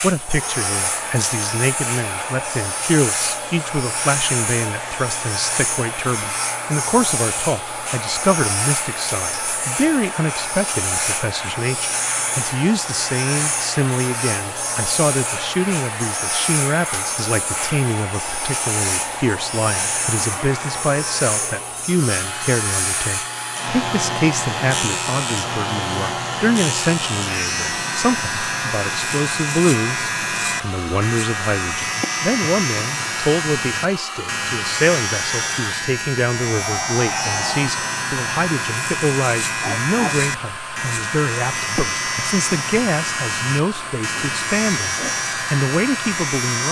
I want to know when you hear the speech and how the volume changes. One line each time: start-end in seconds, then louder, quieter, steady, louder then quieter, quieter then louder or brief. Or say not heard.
0.0-46.6 steady.